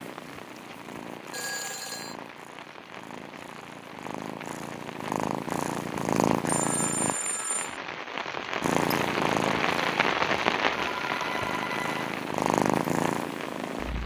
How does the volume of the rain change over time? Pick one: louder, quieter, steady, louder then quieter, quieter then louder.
louder then quieter.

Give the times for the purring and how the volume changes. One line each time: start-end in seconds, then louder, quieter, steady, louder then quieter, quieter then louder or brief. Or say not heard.
0.0-7.2 louder
8.6-14.0 quieter then louder.